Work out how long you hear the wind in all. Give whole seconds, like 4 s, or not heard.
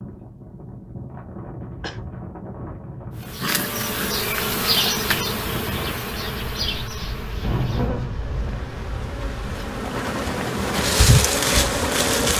12 s.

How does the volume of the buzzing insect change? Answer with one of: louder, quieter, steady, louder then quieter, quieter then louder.
quieter then louder.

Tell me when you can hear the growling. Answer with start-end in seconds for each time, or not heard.
3.4-4.2.